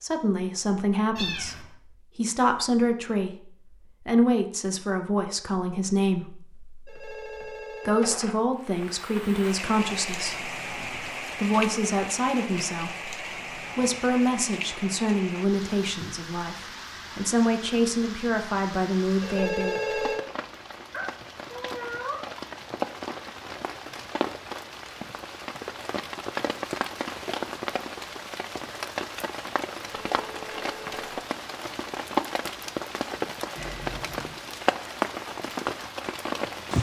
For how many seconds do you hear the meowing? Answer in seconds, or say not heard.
3 s.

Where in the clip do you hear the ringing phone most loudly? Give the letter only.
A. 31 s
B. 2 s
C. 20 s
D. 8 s
C.